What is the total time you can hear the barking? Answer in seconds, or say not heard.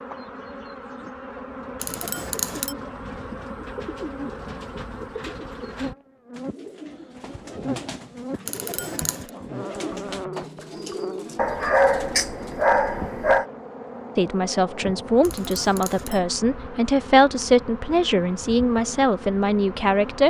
2 s.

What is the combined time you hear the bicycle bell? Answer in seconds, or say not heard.
3 s.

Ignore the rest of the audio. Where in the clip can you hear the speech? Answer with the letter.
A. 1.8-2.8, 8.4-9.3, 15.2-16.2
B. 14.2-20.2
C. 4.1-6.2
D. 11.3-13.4
B.